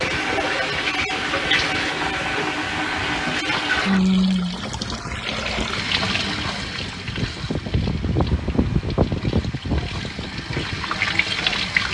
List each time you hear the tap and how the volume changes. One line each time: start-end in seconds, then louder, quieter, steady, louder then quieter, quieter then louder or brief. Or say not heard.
0.0-11.8 quieter then louder.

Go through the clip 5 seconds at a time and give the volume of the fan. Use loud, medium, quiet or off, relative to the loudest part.
quiet, loud, medium.